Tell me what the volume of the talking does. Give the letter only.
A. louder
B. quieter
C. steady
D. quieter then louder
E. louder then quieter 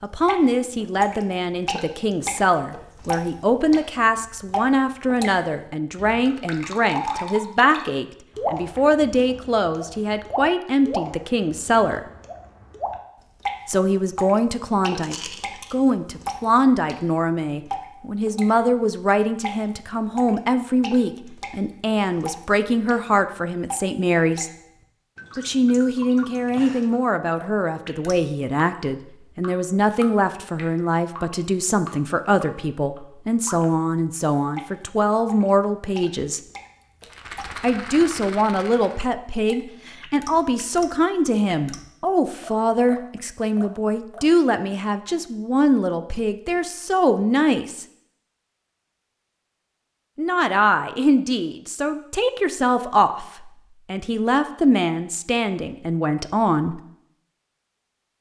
C.